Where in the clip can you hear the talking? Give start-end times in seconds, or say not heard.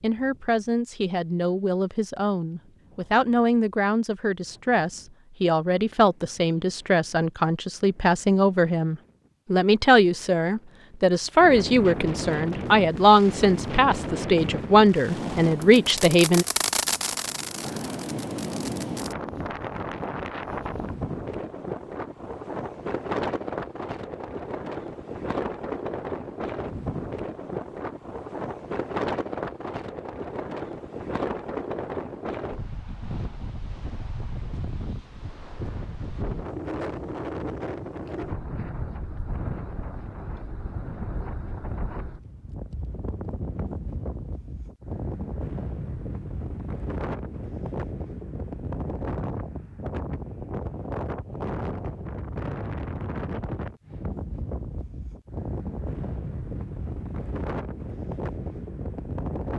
0.0-16.4.